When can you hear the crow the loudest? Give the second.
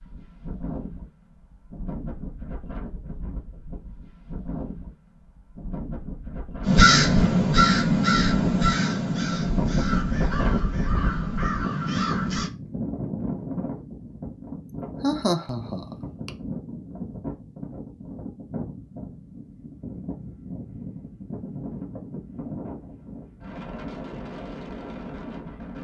7 s.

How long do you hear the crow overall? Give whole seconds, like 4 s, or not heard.
6 s.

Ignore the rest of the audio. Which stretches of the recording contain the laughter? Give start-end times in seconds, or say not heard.
15.0-16.3.